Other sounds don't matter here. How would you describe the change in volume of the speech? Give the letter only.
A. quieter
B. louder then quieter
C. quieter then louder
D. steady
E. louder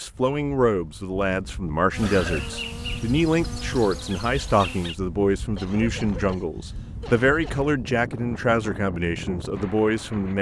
D.